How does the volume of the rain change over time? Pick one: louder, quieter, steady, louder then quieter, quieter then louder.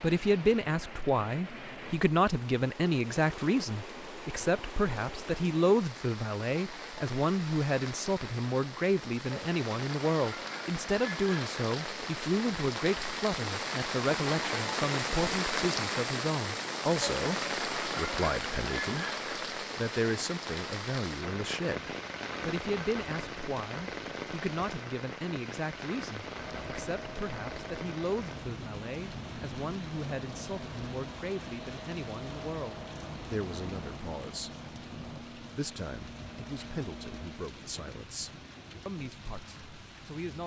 louder then quieter.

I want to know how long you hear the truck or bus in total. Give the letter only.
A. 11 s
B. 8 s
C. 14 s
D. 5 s
A.